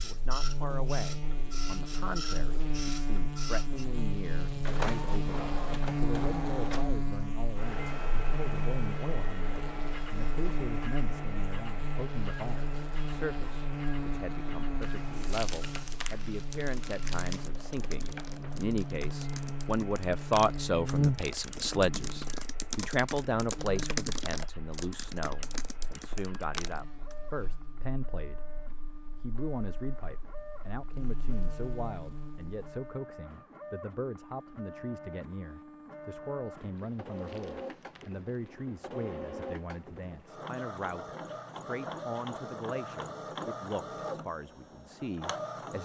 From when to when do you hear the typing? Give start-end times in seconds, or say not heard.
16.6-27.1.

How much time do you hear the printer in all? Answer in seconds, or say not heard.
46 s.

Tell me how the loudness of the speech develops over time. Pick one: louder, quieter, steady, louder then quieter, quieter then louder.
louder then quieter.